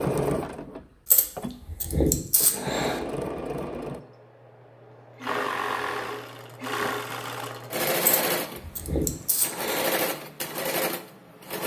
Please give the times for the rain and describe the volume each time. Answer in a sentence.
You can't hear the rain here.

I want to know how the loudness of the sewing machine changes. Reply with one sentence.
The loudness of the sewing machine goes up.